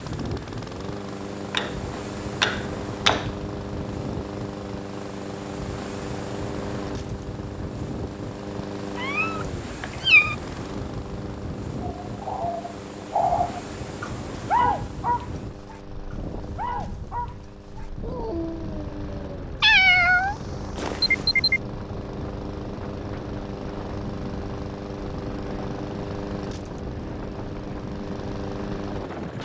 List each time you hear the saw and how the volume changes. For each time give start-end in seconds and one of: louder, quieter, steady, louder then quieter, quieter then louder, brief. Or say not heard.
not heard.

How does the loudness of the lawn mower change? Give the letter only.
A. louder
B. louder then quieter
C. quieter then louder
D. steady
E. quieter
C.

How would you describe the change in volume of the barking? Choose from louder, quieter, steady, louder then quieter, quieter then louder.
quieter then louder.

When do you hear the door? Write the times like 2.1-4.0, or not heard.
not heard.